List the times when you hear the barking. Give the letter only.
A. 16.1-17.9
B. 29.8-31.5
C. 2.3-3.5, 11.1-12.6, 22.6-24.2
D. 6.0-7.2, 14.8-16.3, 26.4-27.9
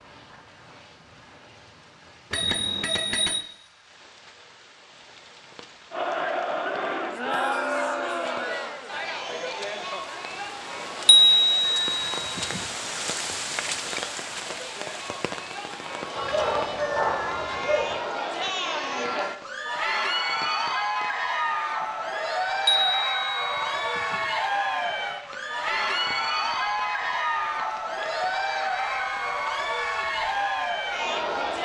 A.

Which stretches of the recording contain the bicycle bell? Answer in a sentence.
You can hear the bicycle bell from 2.3 to 3.5 s, from 11.1 to 12.6 s and from 22.6 to 24.2 s.